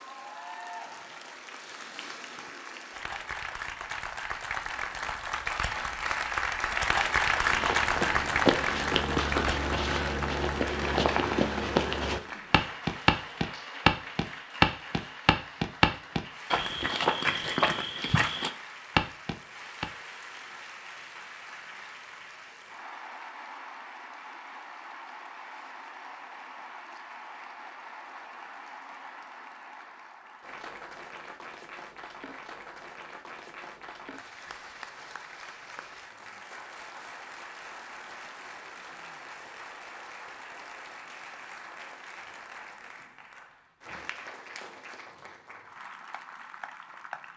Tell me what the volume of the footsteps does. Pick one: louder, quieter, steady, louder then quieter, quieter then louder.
louder then quieter.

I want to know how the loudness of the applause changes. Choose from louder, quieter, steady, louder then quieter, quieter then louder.
quieter.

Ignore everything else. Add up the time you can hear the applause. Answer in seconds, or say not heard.
47 s.